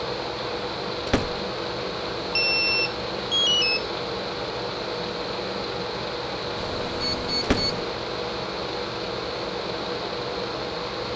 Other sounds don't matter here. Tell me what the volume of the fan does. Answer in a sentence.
The loudness of the fan stays about the same.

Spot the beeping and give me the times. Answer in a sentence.
The beeping can be heard from 2.4 to 3.9 s and from 6.5 to 7.8 s.